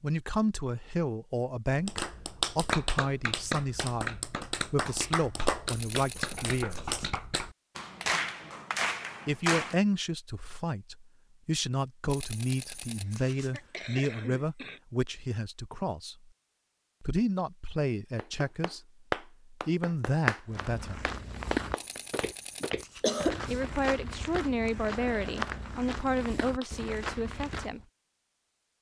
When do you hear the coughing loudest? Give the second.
23 s.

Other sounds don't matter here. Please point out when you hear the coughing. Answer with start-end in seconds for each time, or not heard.
6.1-7.1, 13.1-14.8, 22.6-23.4.